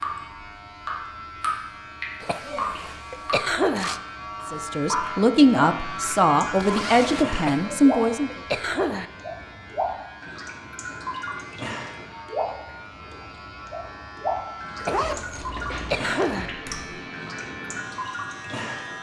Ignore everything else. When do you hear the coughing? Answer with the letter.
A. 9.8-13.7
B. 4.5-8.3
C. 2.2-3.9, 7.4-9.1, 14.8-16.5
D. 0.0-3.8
C.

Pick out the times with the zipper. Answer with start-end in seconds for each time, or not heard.
2.2-4.0, 6.5-7.2, 14.8-16.5.